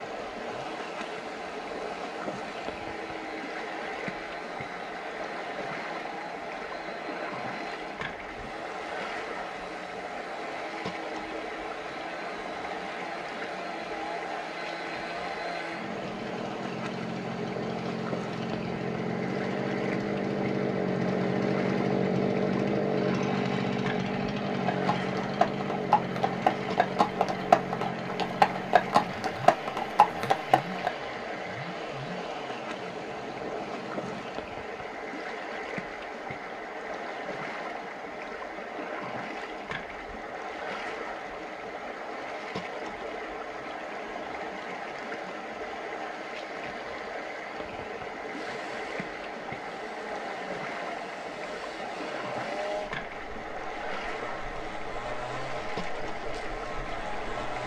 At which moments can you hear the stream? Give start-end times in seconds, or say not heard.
0.0-57.6.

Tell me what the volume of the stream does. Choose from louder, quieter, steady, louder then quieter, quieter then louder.
steady.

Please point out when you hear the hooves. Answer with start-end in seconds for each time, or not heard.
24.6-30.9.